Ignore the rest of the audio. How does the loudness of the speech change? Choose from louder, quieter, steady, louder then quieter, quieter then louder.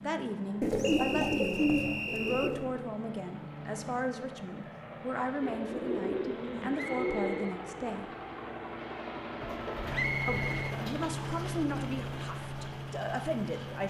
steady.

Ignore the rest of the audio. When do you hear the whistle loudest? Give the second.
10 s.